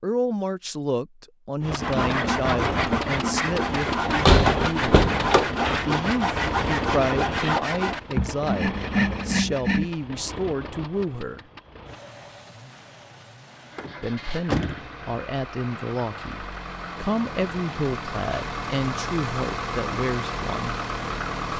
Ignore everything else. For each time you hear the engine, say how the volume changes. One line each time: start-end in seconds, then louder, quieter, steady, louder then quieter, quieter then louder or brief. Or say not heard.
1.6-21.5 quieter then louder.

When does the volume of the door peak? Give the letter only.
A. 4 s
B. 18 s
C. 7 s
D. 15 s
A.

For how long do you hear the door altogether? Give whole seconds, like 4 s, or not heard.
3 s.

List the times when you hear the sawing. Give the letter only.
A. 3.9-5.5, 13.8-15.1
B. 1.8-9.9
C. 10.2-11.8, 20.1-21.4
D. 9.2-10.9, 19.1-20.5
B.